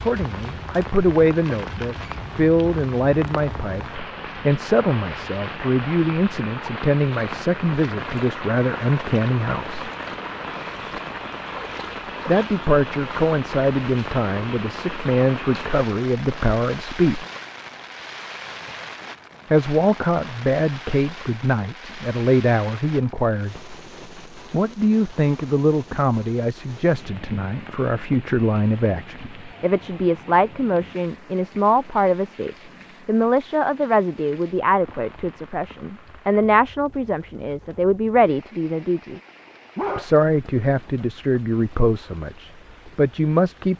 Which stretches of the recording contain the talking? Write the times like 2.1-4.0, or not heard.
0.0-9.9, 12.2-17.2, 19.5-23.8, 24.5-39.2, 40.0-43.7.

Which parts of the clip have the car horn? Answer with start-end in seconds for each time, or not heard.
not heard.